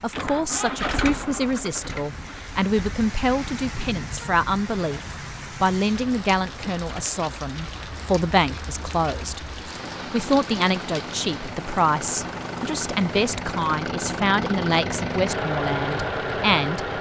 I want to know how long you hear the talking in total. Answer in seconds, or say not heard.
16 s.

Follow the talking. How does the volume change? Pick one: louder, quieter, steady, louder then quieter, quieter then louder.
steady.